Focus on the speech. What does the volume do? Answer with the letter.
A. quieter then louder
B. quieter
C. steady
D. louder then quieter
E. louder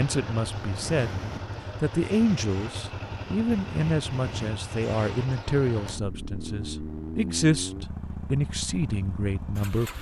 C.